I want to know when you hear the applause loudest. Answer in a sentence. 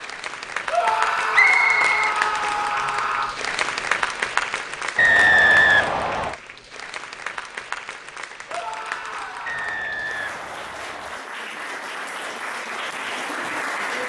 The volume of the applause peaks at 4 seconds.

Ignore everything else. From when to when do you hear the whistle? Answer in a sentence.
The whistle can be heard from 1.3 to 2.7 s, from 5.0 to 6.3 s and from 9.4 to 11.2 s.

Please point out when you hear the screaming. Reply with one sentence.
The screaming can be heard from 0.7 to 3.4 s and from 8.4 to 9.8 s.